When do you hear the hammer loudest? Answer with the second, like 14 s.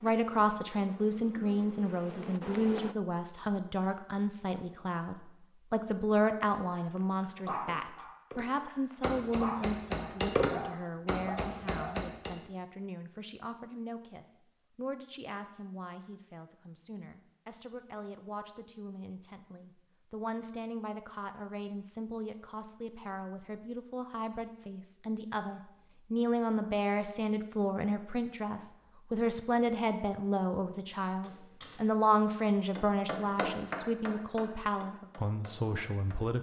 10 s.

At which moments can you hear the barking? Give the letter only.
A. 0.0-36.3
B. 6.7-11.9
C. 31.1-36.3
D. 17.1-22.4
B.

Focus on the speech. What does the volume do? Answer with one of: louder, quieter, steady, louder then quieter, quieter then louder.
quieter then louder.